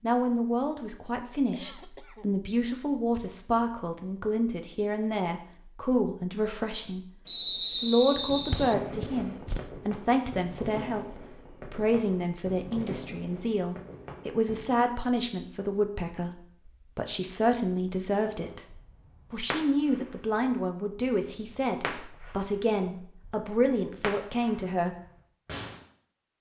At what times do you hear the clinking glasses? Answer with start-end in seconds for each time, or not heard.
not heard.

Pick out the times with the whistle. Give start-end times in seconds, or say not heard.
7.2-8.8.